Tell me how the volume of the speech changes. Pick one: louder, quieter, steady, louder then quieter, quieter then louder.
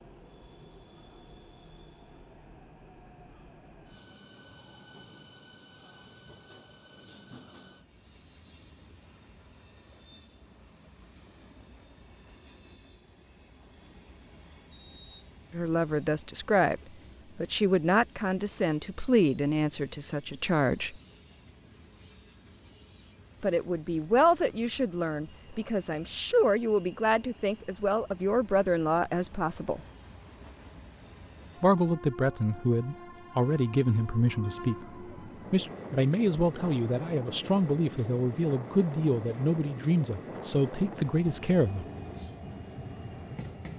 steady.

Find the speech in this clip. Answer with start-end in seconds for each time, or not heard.
15.5-20.9, 23.4-29.8, 31.6-41.9.